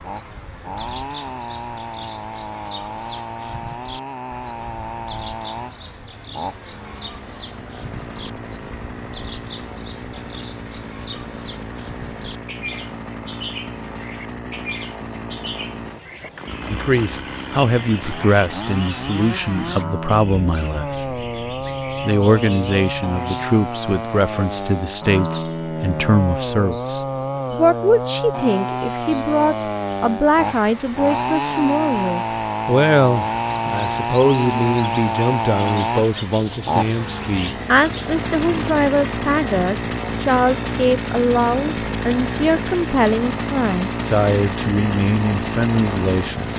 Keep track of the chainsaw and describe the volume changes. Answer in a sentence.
The loudness of the chainsaw goes up.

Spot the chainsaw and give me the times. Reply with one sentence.
You can hear the chainsaw from 0.0 to 46.5 s.